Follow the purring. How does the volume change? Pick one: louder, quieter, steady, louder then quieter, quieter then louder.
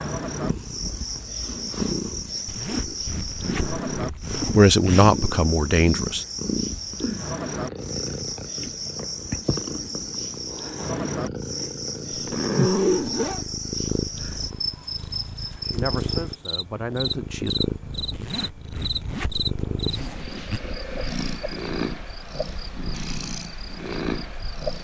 steady.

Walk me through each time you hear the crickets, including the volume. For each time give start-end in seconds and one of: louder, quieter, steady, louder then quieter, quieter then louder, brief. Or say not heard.
0.0-24.8 quieter.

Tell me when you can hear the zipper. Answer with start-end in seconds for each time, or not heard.
2.5-5.1, 12.1-13.4, 18.1-20.6.